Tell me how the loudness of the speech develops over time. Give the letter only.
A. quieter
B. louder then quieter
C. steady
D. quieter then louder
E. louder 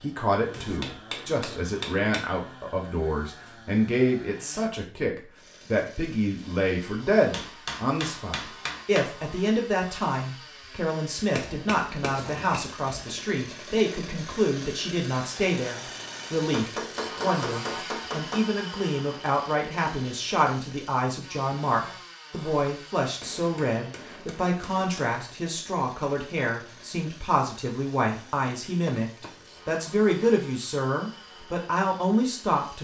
C.